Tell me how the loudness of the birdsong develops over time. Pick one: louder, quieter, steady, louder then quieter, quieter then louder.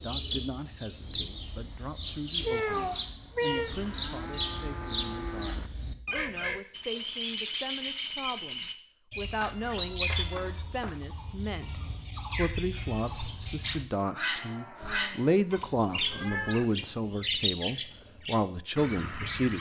steady.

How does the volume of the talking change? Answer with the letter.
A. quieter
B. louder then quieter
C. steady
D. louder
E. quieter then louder
D.